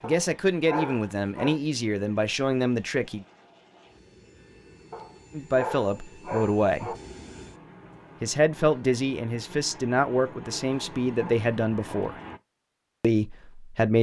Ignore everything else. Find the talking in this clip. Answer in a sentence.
You can hear the talking from 0.0 to 3.2 s, from 5.3 to 6.9 s, from 8.2 to 12.2 s and from 13.0 to 13.9 s.